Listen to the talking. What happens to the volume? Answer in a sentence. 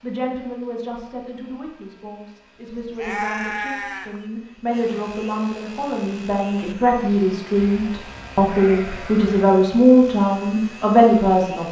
The volume of the talking goes up.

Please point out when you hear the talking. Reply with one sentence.
You can hear the talking from 0.0 to 11.6 s.